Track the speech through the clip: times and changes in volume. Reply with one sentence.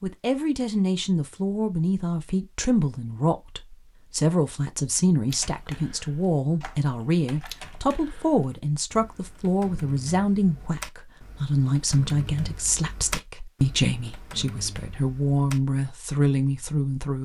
The speech can be heard from 0.0 to 17.1 s, at a steady volume.